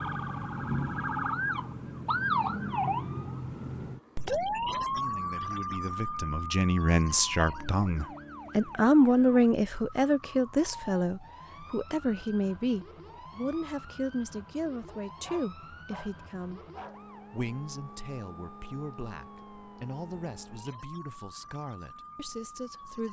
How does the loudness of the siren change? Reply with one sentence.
The volume of the siren goes down.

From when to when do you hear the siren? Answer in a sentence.
You can hear the siren from 0.0 to 23.0 s.